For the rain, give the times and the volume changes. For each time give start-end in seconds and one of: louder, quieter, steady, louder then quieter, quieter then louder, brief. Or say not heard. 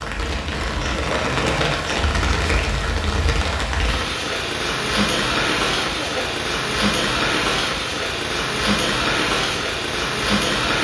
0.0-10.7 steady.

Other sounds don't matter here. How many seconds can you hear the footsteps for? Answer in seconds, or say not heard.
not heard.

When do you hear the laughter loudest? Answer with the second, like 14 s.
1 s.